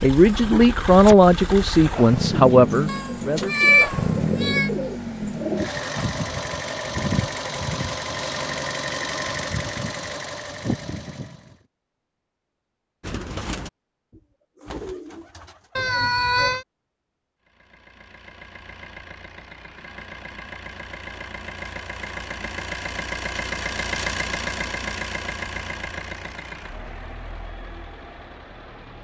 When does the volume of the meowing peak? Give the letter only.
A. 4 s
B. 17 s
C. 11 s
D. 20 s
A.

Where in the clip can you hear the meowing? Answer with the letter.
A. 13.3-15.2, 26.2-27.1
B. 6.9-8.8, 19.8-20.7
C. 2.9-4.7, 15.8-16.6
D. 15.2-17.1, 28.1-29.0
C.